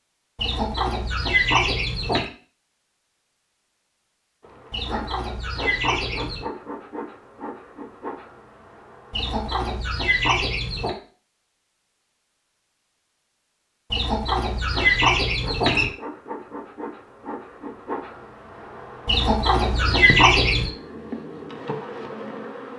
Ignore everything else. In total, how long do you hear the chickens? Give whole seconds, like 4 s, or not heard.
9 s.